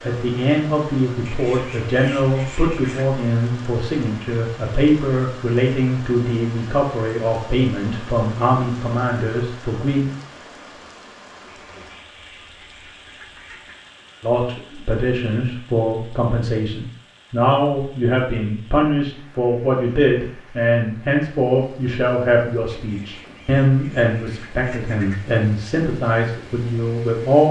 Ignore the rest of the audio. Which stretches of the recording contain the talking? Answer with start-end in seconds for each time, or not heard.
0.0-10.1, 14.2-27.4.